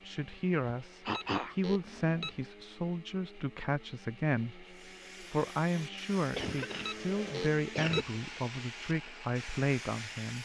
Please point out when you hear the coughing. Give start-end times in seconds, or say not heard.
1.1-2.2, 6.3-8.1.